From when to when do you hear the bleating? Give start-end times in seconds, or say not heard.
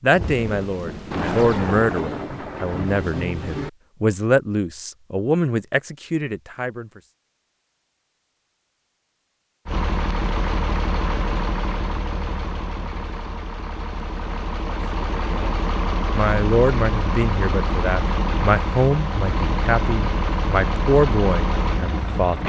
not heard.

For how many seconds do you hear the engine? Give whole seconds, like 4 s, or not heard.
13 s.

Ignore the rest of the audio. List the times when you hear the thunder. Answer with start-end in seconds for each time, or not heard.
0.1-3.7.